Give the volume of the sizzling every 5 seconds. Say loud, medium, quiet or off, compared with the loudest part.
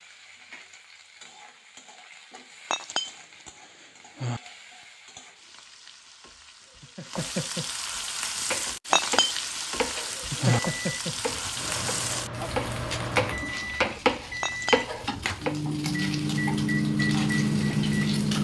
quiet, loud, loud, loud.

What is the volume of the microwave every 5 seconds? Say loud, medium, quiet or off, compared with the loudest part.
off, off, medium, loud.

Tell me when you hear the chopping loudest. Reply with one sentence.
The volume of the chopping peaks at 14 seconds.